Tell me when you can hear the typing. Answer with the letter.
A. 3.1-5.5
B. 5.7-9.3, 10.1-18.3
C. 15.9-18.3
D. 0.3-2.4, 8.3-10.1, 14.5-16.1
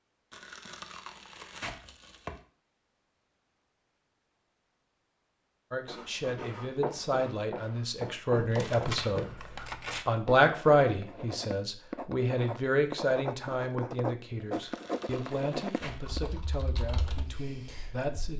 C.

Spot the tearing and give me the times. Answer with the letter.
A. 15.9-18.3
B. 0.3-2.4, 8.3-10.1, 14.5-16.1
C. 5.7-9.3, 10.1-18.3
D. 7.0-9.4
B.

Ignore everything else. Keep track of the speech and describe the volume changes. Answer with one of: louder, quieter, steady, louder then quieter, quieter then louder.
louder then quieter.